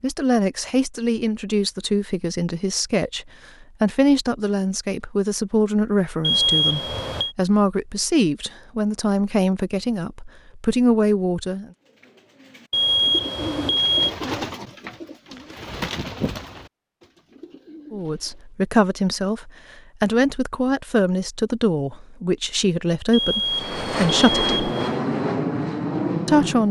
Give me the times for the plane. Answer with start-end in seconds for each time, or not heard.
23.4-26.6.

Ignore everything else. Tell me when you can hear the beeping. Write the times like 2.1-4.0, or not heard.
6.2-7.3, 12.7-14.1, 23.1-24.9.